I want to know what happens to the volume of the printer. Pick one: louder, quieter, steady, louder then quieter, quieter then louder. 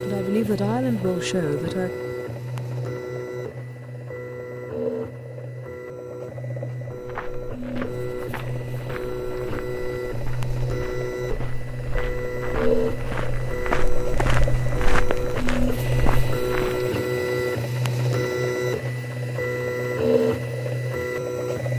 louder.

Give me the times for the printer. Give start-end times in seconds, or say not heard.
0.0-21.7.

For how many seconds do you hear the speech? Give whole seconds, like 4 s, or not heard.
2 s.